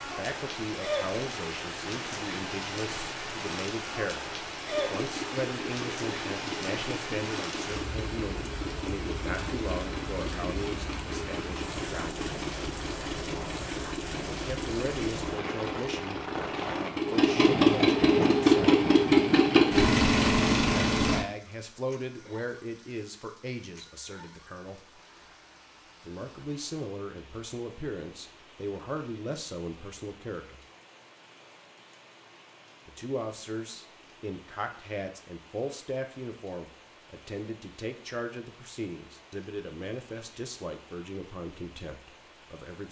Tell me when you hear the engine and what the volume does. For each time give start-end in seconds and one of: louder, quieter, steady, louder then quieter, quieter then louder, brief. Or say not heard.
4.7-21.2 louder.